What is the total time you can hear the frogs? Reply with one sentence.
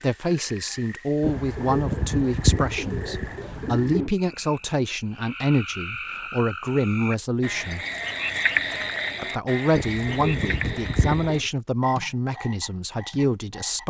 You can hear the frogs for 14 seconds altogether.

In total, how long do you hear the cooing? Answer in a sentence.
The cooing can be heard for 5 seconds in total.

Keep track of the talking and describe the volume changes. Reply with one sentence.
The loudness of the talking stays about the same.